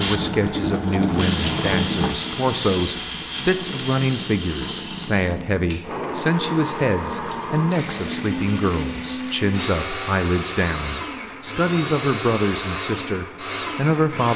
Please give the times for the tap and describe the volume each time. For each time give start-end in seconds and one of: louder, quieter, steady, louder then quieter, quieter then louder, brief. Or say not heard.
0.0-9.4 quieter.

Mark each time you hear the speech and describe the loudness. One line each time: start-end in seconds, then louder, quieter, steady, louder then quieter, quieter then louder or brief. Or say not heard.
0.0-14.3 steady.